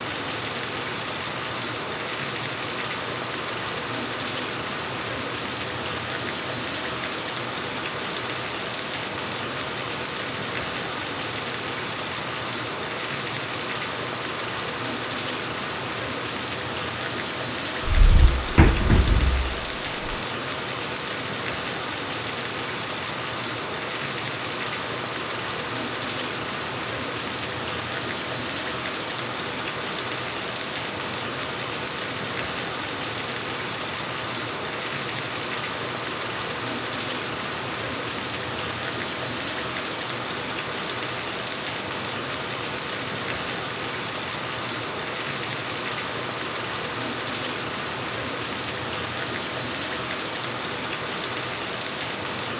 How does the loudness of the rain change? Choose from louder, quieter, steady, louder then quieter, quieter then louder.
steady.